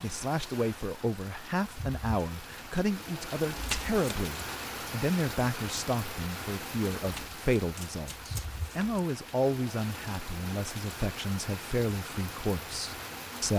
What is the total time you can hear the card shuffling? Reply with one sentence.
The card shuffling can be heard for 3 seconds in total.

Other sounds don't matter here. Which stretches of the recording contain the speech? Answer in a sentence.
You can hear the speech from 0.0 to 13.5 s.